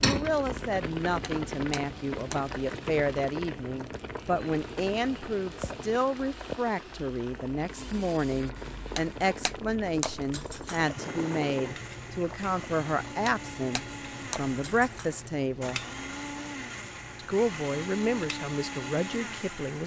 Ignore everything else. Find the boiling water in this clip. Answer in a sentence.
You can hear the boiling water from 0.0 to 19.6 s.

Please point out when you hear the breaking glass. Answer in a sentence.
The breaking glass can be heard from 1.2 to 2.4 s, from 8.9 to 10.8 s and from 13.2 to 15.1 s.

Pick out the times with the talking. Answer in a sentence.
The talking can be heard from 0.0 to 15.8 s and from 17.1 to 19.8 s.